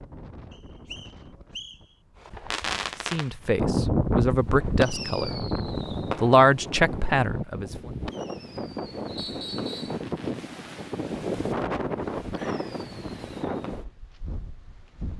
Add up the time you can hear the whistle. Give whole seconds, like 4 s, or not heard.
2 s.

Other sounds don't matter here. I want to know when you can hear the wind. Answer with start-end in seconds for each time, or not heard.
0.0-15.1.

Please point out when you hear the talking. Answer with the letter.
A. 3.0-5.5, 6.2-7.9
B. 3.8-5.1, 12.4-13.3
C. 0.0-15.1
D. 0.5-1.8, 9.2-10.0
A.